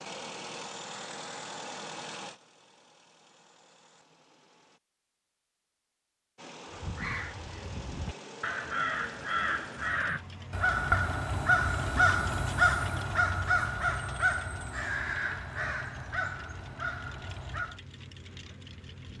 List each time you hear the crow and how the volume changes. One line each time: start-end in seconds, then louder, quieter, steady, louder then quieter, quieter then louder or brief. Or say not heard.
6.7-17.8 louder then quieter.